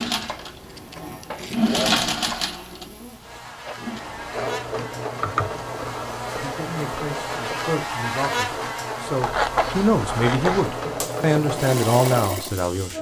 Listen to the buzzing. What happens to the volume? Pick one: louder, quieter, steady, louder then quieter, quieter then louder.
louder then quieter.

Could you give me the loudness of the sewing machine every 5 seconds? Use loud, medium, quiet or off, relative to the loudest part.
loud, medium, loud.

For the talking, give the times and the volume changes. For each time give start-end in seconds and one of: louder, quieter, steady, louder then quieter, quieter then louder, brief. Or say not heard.
6.3-12.9 louder.